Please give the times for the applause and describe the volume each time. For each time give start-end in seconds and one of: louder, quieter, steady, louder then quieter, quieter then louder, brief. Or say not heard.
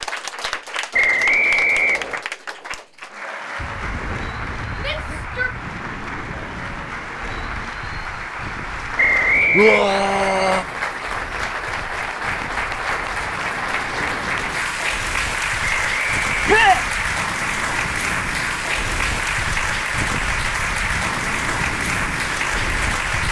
0.0-23.2 louder.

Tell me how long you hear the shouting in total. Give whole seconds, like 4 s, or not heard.
2 s.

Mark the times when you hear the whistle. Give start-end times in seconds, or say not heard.
0.9-2.2, 8.9-9.8, 15.8-16.4.